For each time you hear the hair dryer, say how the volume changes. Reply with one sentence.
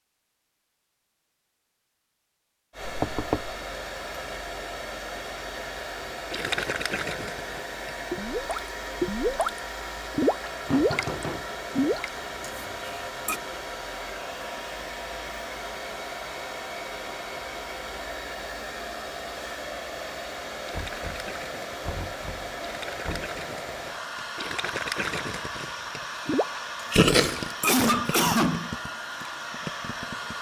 You can hear the hair dryer from 2.7 to 30.3 s, at a steady volume.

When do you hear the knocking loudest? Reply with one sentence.
The loudest moment of the knocking is at 3 seconds.